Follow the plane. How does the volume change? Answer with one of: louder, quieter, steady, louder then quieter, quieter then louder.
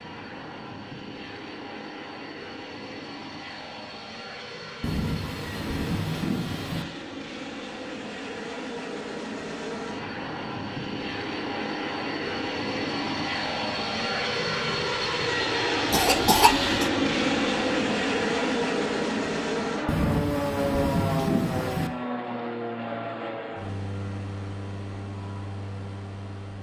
louder then quieter.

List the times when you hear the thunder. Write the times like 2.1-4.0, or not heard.
4.8-6.8, 19.9-21.9.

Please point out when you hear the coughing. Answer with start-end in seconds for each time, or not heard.
15.9-16.9.